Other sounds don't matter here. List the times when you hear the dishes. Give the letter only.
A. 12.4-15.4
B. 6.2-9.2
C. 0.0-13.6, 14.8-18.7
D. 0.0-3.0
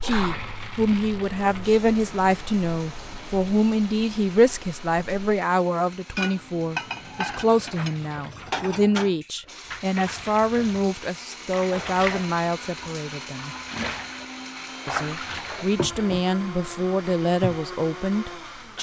B.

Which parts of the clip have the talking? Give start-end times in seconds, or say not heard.
0.0-13.6, 14.8-18.7.